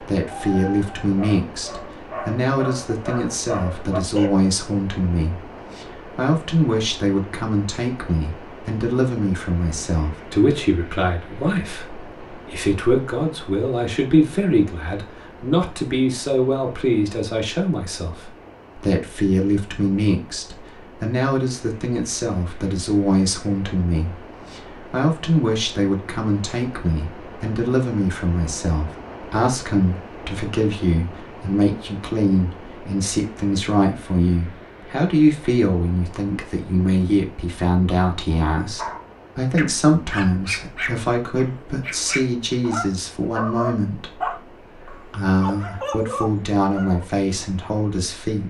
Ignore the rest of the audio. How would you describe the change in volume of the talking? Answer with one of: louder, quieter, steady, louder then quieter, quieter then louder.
steady.